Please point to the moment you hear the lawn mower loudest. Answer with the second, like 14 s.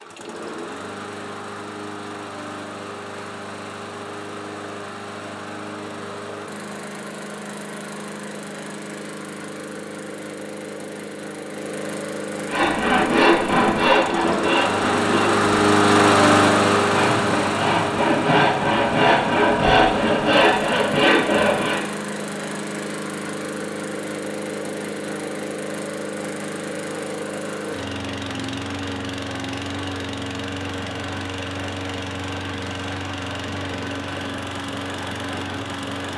16 s.